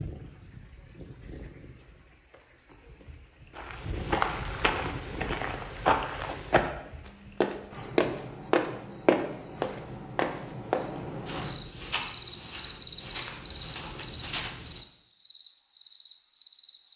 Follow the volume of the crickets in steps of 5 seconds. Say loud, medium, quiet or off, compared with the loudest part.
quiet, medium, loud, medium.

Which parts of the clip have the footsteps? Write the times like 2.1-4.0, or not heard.
3.5-14.8.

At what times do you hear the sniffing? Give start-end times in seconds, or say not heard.
not heard.